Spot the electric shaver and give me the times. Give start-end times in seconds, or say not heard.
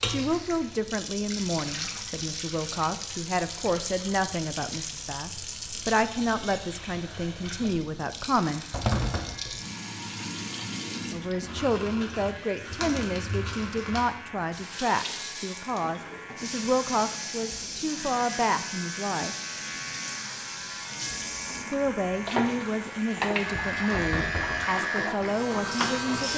8.3-26.3.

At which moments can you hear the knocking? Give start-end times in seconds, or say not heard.
8.7-9.4, 23.9-24.6.